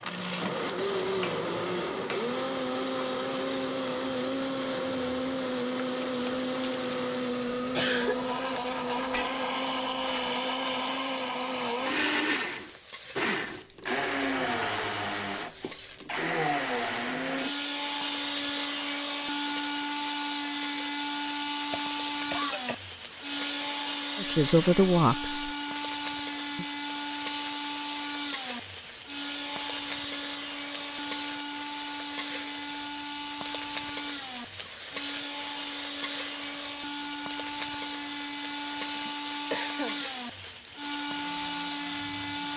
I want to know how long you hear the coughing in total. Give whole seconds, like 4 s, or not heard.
3 s.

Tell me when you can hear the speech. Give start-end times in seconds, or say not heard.
24.1-25.5.